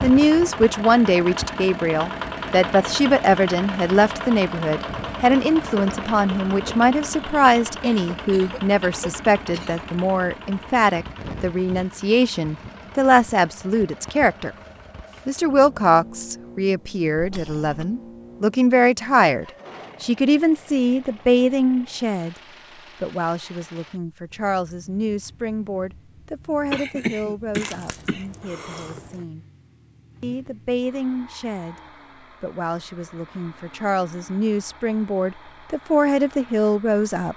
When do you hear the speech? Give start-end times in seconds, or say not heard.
0.0-14.5, 15.2-22.4, 23.0-29.4, 30.2-31.8, 32.4-37.3.